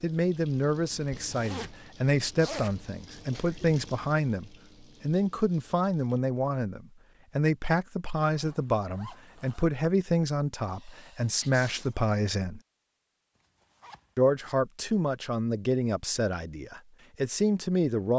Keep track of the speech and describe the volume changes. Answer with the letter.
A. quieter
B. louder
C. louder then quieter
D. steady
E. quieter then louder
D.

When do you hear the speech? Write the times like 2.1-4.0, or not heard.
0.0-12.6, 14.2-18.1.